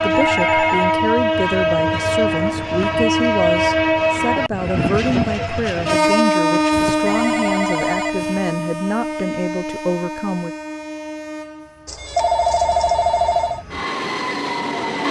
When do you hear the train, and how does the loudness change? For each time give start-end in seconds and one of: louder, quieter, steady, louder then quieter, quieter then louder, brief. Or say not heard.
0.0-15.0 quieter.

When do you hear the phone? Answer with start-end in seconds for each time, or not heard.
0.1-1.0, 6.7-8.4, 11.8-13.7.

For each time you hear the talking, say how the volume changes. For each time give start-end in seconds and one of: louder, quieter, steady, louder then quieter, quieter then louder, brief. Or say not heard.
0.0-10.5 steady.